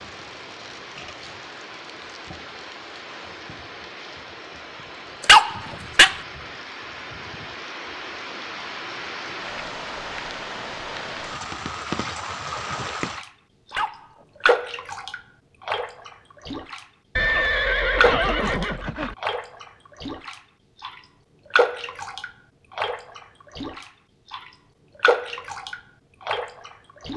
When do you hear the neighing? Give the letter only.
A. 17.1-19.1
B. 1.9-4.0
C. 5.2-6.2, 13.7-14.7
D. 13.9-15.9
A.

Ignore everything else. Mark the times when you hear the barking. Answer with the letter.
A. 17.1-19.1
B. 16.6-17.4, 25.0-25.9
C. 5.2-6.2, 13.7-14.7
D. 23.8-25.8
C.